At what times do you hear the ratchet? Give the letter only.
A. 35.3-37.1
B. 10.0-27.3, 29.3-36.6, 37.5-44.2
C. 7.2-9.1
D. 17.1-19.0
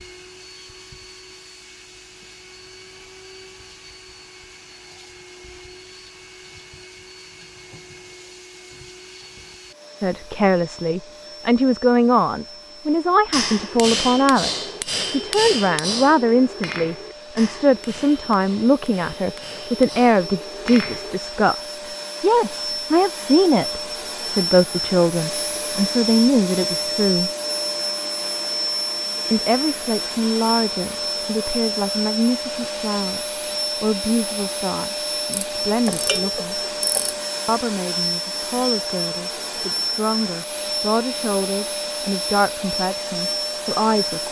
A.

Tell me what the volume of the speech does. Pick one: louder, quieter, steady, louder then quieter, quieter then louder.
quieter.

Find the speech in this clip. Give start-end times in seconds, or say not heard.
10.0-27.3, 29.3-36.6, 37.5-44.2.